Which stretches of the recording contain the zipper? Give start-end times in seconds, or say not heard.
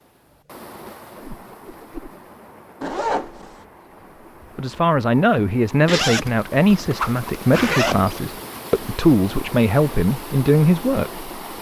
2.8-3.6, 5.8-8.2.